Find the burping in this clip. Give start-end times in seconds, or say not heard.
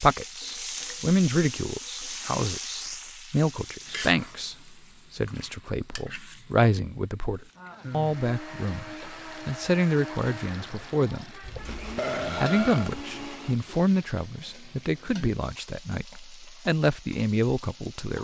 11.4-13.1.